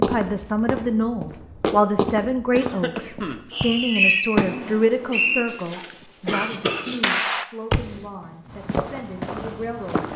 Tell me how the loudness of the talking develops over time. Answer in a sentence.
The loudness of the talking goes down.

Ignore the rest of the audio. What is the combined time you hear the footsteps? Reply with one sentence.
The footsteps can be heard for 5 seconds in total.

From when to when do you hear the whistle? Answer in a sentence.
The whistle can be heard from 3.5 to 5.4 s.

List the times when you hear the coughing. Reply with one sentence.
You can hear the coughing from 2.5 to 3.4 s and from 5.5 to 7.0 s.